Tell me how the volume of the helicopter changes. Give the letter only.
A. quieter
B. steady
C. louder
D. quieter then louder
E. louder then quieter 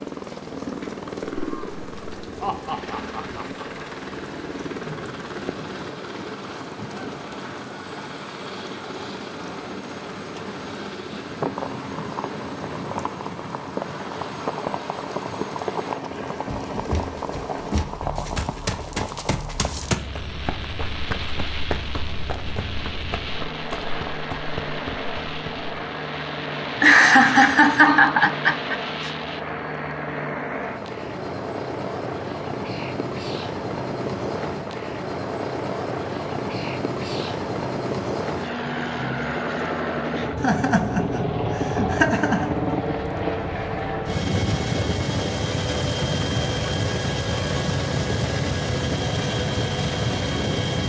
C.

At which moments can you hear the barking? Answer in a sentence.
The barking can't be heard in this clip.